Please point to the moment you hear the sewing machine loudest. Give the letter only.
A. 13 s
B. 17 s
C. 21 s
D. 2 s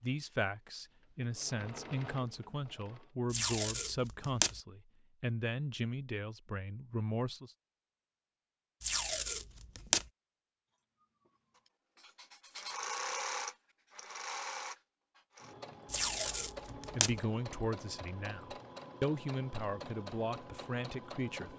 A.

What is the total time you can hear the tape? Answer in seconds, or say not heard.
4 s.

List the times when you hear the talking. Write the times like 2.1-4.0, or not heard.
0.0-7.5, 16.9-21.5.